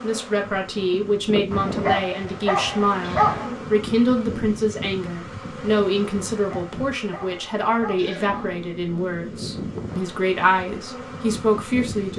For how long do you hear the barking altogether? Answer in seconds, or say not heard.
4 s.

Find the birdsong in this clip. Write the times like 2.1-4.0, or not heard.
not heard.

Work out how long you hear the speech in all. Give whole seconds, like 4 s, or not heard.
12 s.